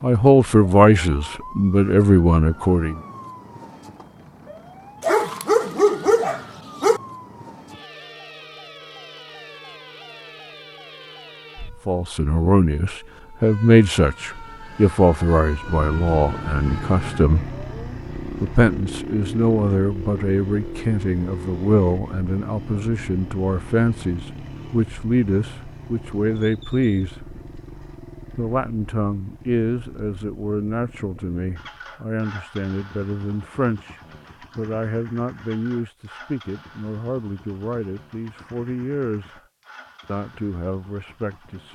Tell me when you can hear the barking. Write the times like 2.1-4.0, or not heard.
5.0-7.0.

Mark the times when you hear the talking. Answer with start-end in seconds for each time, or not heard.
0.0-3.0, 11.8-17.4, 18.4-27.2, 28.4-39.4, 40.0-41.7.